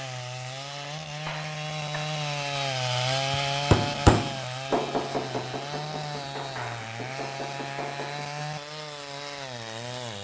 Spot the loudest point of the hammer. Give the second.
4 s.